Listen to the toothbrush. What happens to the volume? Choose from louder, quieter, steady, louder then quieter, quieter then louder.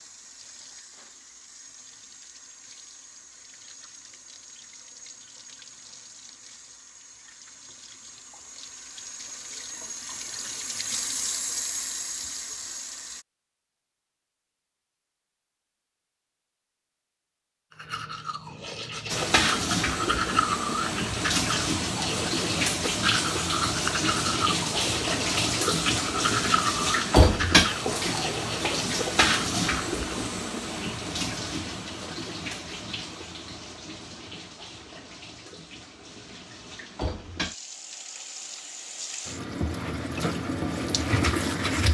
steady.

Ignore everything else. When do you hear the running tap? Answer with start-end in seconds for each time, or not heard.
0.0-13.2, 19.1-41.8.